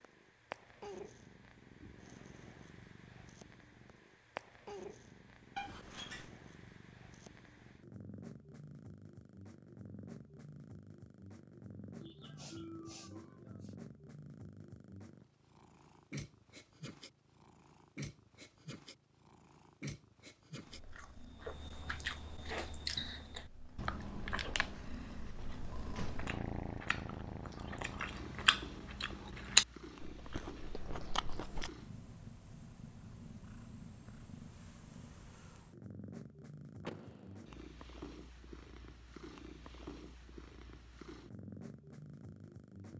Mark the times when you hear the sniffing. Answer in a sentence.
The sniffing can be heard from 12.0 to 13.8 s.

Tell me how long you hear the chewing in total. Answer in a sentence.
The chewing can be heard for 11 seconds in total.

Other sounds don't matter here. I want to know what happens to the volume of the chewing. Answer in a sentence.
The volume of the chewing goes down, then up.